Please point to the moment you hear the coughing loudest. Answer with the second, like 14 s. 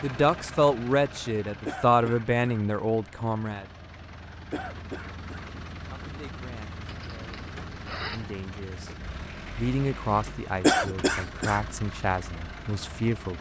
11 s.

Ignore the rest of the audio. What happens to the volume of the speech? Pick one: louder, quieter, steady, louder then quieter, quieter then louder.
quieter then louder.